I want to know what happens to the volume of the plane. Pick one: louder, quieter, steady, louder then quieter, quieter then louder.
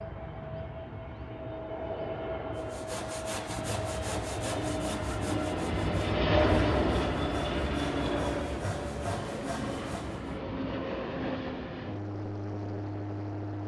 louder then quieter.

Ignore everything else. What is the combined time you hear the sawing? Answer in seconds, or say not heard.
8 s.